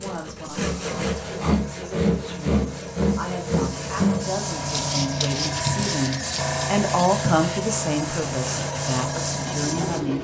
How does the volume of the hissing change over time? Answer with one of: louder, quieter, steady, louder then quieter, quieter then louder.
louder.